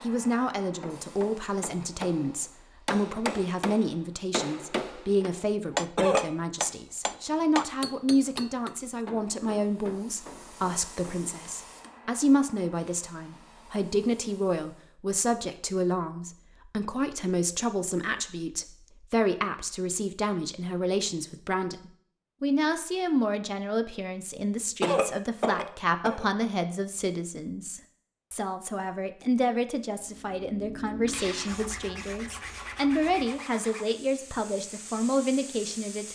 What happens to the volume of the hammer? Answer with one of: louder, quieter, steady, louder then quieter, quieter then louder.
louder then quieter.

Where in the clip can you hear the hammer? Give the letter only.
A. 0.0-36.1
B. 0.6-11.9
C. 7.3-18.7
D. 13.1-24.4
B.